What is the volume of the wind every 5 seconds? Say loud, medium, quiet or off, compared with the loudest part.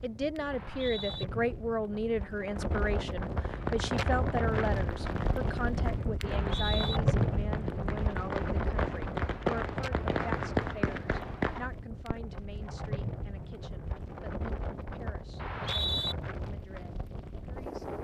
loud, loud, medium, medium.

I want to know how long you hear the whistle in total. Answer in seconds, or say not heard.
2 s.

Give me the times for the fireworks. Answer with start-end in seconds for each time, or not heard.
3.4-12.2.